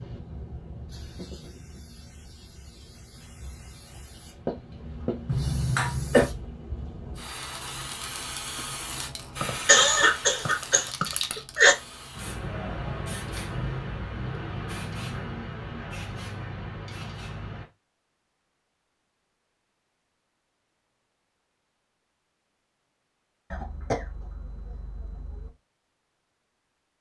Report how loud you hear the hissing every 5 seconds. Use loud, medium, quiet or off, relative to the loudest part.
medium, loud, loud, loud, off, off.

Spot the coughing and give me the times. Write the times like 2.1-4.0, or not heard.
5.2-6.3, 9.4-11.8, 23.5-25.5.